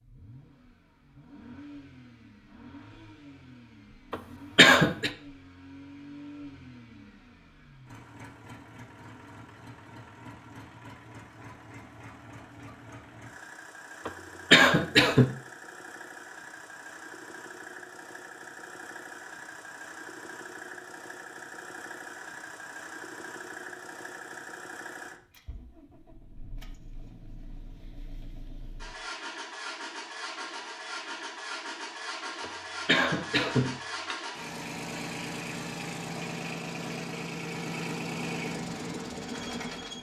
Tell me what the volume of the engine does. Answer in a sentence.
The volume of the engine goes up.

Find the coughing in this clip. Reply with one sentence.
The coughing can be heard from 4.1 to 5.1 s, from 14.1 to 15.2 s and from 32.4 to 34.1 s.